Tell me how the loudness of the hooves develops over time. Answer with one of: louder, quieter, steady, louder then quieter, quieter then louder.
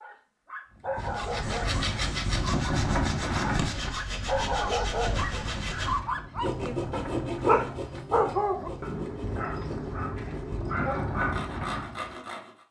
quieter then louder.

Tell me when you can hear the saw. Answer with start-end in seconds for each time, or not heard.
1.0-12.6.